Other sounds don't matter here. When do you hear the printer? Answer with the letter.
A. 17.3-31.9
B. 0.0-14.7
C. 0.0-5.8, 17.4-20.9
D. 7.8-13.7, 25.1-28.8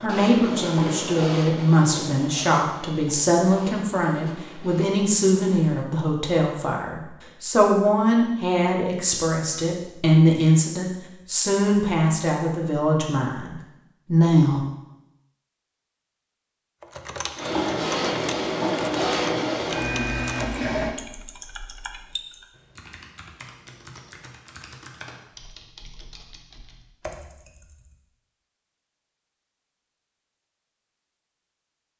C.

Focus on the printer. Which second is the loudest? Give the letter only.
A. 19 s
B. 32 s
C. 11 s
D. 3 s
A.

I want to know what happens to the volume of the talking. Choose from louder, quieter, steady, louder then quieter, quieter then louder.
steady.